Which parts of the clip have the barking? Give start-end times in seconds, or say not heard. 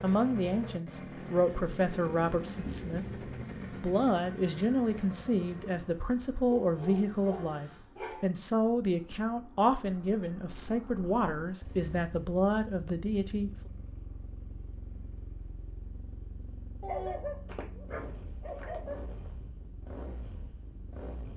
6.5-8.3, 16.8-19.3.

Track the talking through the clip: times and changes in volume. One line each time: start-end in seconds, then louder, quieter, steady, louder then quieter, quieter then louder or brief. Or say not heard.
0.0-13.5 steady.